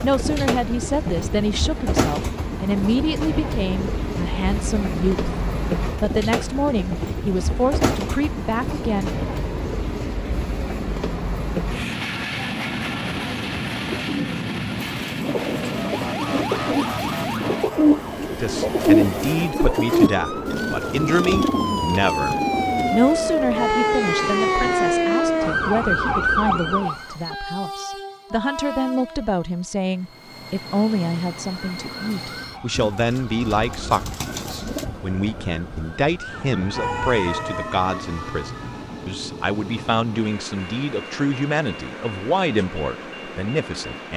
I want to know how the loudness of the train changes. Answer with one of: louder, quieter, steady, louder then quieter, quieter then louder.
quieter.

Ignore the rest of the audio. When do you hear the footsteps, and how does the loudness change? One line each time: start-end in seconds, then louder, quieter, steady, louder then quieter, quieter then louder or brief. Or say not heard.
not heard.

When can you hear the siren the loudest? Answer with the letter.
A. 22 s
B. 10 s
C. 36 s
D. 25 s
D.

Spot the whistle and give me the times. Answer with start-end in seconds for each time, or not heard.
not heard.